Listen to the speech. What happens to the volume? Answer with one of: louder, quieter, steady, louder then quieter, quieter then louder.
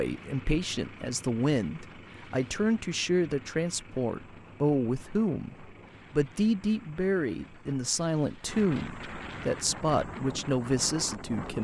steady.